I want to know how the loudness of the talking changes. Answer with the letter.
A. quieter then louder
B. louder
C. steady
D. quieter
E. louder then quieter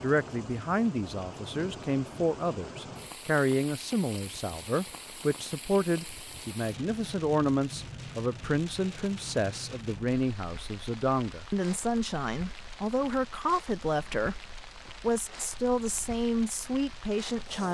C.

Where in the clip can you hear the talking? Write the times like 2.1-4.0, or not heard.
0.0-17.7.